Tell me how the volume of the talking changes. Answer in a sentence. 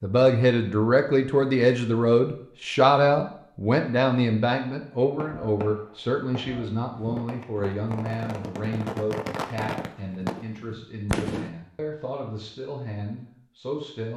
The volume of the talking goes down.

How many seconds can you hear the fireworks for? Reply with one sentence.
You can hear the fireworks for 6 seconds altogether.